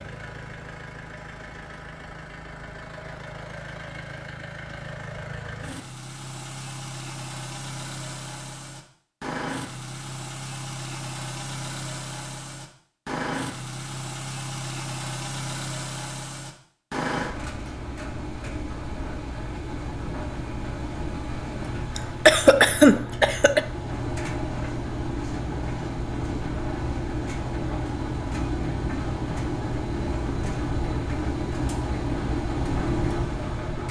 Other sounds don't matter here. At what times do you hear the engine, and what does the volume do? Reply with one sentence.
The engine can be heard from 0.0 to 33.8 s, getting louder.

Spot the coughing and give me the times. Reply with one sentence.
You can hear the coughing from 21.9 to 23.6 s.